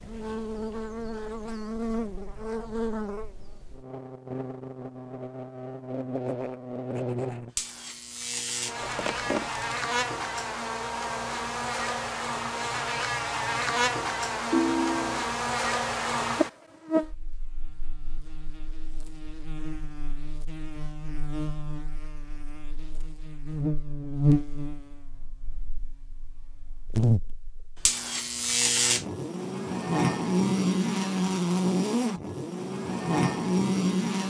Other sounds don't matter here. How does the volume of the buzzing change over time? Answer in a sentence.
The volume of the buzzing goes up.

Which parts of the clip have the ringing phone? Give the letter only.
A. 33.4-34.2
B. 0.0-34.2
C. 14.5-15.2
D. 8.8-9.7
C.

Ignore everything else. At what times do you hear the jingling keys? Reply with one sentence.
You can hear the jingling keys from 8.8 to 9.7 s.